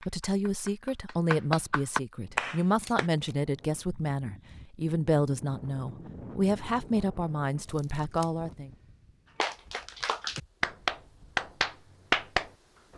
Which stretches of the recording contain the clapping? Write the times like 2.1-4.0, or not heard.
0.0-3.1, 9.4-12.5.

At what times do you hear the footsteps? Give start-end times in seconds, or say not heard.
not heard.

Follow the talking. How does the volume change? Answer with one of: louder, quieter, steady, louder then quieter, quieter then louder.
steady.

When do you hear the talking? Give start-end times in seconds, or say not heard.
0.0-8.7.